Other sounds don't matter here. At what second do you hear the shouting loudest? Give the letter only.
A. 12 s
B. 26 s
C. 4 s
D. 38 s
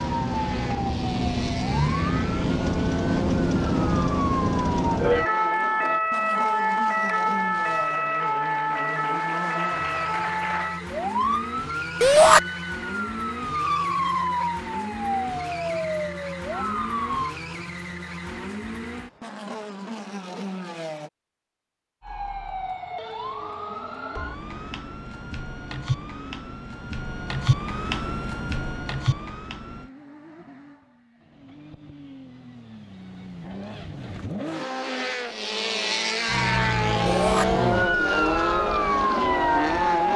A.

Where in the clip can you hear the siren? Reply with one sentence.
You can hear the siren from 0.0 to 17.4 s, from 22.0 to 29.9 s and from 36.2 to 40.1 s.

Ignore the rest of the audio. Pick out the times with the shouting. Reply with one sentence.
The shouting can be heard from 12.0 to 12.4 s and from 37.0 to 37.5 s.